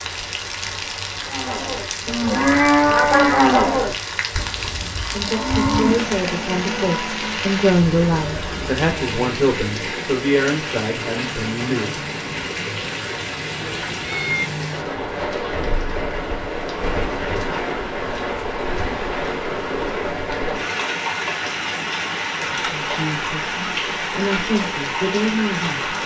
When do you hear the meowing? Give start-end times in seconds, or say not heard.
13.6-14.5.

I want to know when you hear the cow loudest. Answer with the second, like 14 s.
3 s.